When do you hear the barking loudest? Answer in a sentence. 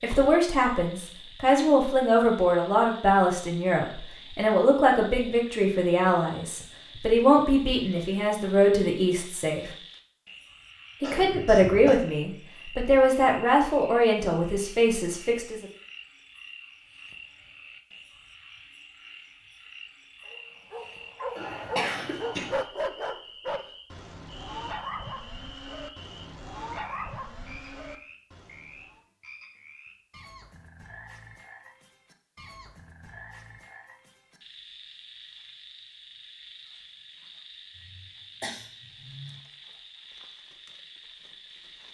The loudest moment of the barking is at 23 seconds.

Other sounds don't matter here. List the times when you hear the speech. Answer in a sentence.
The speech can be heard from 0.0 to 9.7 s and from 11.0 to 15.7 s.